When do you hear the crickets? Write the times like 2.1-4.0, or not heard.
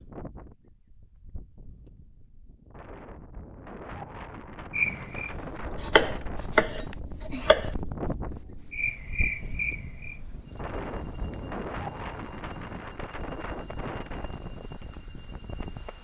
4.7-15.9.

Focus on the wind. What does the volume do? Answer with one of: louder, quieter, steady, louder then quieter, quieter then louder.
louder.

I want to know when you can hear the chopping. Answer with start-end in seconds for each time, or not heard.
5.8-7.7.